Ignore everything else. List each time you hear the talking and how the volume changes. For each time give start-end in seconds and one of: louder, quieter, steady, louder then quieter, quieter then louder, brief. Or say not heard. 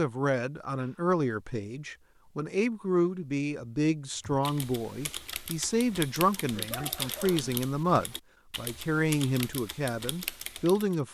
0.0-11.0 steady.